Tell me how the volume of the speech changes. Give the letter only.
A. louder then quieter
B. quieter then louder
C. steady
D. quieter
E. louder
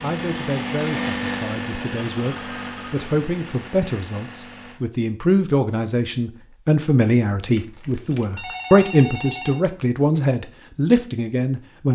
E.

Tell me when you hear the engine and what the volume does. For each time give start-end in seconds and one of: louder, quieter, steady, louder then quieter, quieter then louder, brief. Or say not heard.
0.0-4.8 quieter.